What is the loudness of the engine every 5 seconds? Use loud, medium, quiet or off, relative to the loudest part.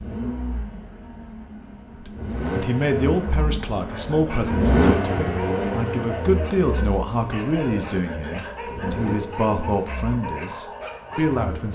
loud, loud, quiet.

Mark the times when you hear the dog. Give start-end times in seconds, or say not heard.
3.9-11.4.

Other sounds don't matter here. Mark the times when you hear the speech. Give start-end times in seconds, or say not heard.
1.9-11.7.